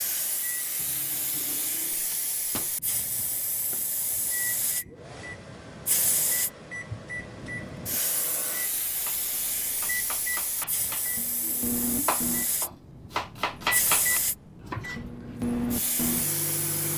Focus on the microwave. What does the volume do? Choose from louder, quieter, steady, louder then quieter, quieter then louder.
louder.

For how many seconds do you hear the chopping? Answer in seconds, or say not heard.
6 s.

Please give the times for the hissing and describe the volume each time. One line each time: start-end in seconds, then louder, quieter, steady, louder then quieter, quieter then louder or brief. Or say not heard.
0.0-16.9 steady.